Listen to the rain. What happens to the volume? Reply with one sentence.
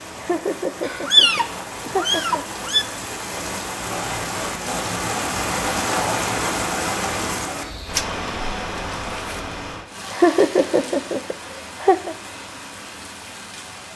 The loudness of the rain goes up, then down.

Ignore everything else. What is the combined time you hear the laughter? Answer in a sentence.
You can hear the laughter for 4 seconds altogether.